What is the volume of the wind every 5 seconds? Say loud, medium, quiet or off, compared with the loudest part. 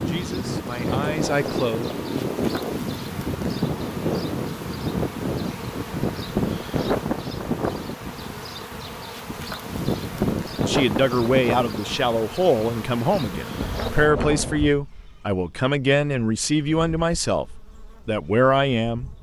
loud, loud, loud, off.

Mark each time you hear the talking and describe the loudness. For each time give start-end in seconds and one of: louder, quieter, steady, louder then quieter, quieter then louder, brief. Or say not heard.
0.0-1.9 brief
10.6-17.4 steady
18.1-19.1 brief.